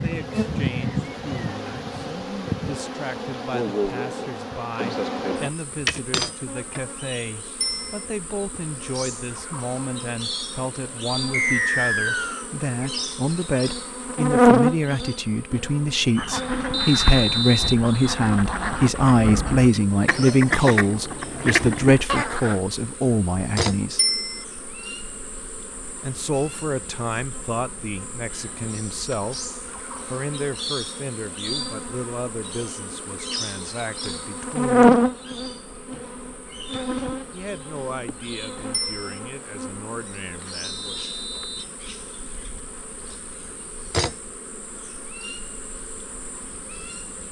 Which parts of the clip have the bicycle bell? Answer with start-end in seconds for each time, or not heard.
7.6-8.1, 23.9-24.4, 38.7-39.2.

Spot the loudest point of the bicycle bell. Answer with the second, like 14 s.
24 s.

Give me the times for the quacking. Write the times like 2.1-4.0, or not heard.
16.1-22.6.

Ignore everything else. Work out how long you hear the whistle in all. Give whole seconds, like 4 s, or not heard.
3 s.